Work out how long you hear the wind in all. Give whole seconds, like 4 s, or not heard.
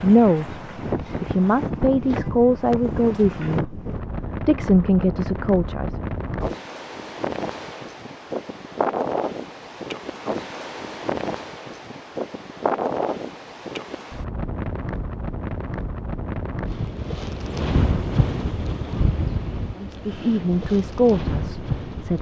22 s.